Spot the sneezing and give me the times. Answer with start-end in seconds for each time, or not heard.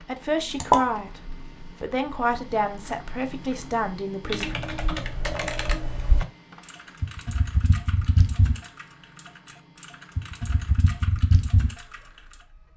not heard.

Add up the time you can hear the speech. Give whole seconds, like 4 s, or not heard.
4 s.